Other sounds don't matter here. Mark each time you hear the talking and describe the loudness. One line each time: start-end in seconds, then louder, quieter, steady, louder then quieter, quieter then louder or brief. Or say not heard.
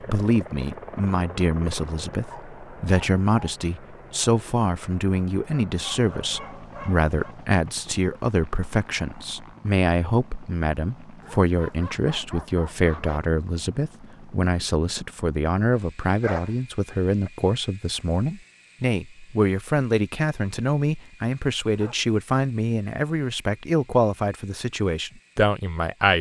0.0-26.1 steady.